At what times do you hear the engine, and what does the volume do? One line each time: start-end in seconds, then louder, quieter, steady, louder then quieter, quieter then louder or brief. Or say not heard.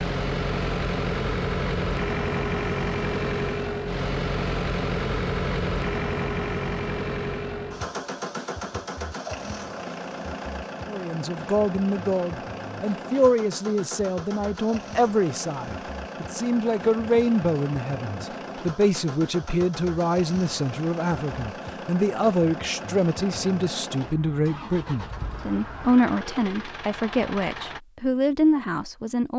0.0-27.8 quieter.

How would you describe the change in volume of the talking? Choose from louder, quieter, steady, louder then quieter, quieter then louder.
steady.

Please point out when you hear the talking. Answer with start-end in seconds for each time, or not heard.
10.8-29.3.